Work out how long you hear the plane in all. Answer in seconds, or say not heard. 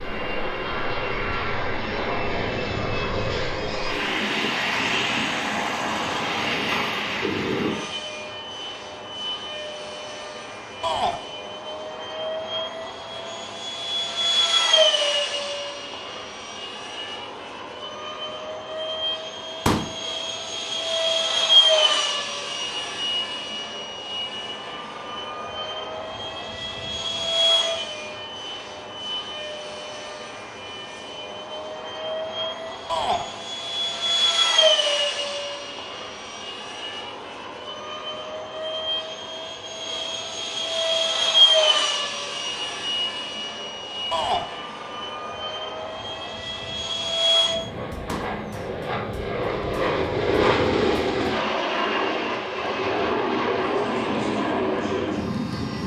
56 s.